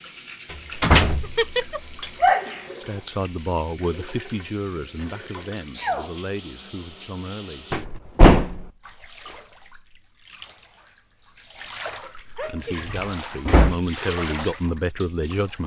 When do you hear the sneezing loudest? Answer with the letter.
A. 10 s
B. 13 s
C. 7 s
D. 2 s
D.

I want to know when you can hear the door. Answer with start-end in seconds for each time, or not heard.
0.5-1.9, 7.7-8.7, 12.8-13.8.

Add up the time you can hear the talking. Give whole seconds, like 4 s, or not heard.
8 s.